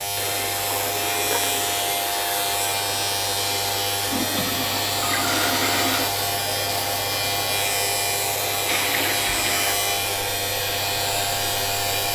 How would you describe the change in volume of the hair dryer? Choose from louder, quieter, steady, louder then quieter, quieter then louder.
steady.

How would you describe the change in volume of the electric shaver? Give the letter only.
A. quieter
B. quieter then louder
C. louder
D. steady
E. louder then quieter
D.